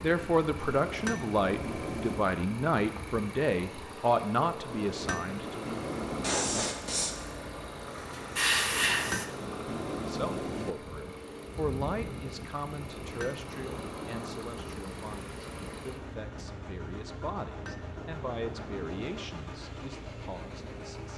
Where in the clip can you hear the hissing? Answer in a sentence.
The hissing can be heard from 6.0 to 9.2 s.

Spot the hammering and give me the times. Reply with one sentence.
The hammering can be heard from 0.7 to 2.3 s, from 4.7 to 6.7 s, from 8.7 to 10.8 s, from 12.8 to 14.5 s and from 17.4 to 19.2 s.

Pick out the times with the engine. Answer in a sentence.
You can hear the engine from 0.0 to 21.1 s.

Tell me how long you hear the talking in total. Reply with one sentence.
You can hear the talking for 17 seconds altogether.